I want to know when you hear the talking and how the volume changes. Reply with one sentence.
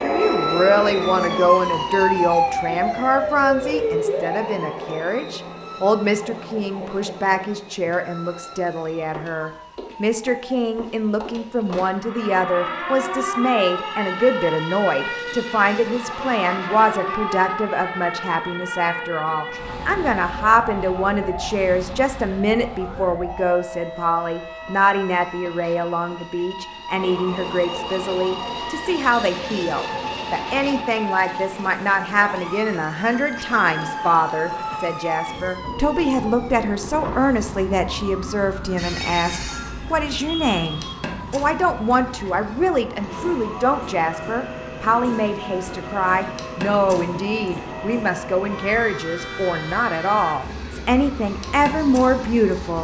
The talking can be heard from 0.0 to 52.7 s, at a steady volume.